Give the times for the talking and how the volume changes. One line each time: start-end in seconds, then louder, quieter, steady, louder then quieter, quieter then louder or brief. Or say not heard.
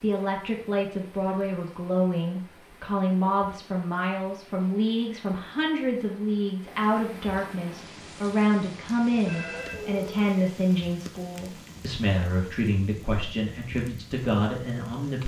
0.0-15.2 steady.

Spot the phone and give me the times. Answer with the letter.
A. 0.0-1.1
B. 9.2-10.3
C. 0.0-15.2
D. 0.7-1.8
B.